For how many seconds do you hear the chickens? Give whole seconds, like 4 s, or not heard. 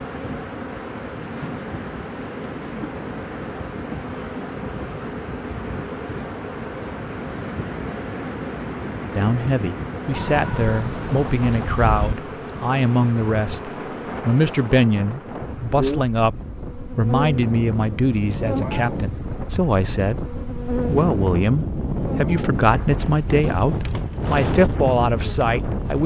2 s.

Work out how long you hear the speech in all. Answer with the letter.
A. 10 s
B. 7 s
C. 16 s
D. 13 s
C.